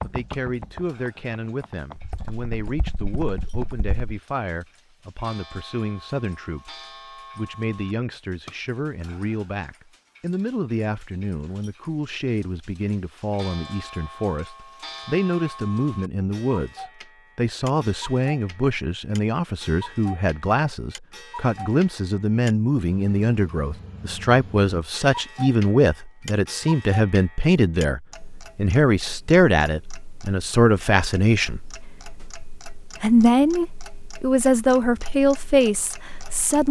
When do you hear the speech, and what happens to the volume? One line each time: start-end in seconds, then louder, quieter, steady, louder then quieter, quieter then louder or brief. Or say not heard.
0.0-36.6 louder.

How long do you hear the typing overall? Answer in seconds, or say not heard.
4 s.